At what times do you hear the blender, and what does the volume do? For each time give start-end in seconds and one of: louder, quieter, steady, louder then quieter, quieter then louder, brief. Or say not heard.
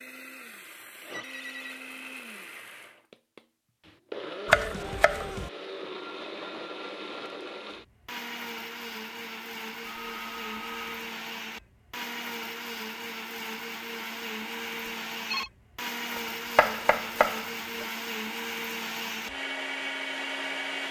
0.0-20.8 louder.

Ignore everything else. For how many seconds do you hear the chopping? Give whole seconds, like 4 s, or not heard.
3 s.